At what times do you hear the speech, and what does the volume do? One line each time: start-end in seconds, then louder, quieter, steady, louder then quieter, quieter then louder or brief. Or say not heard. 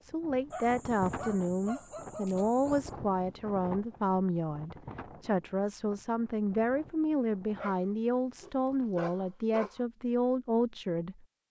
0.0-11.2 steady.